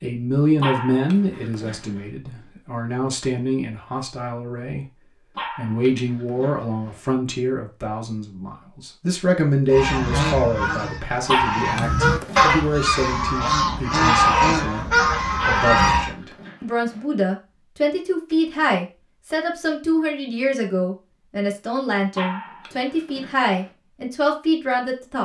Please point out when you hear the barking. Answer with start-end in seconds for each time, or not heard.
0.6-2.0, 5.3-7.0, 11.2-12.6, 15.3-17.0, 22.1-23.6.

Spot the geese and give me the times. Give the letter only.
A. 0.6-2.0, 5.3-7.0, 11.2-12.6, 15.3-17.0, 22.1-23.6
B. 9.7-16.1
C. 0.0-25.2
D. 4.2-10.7
B.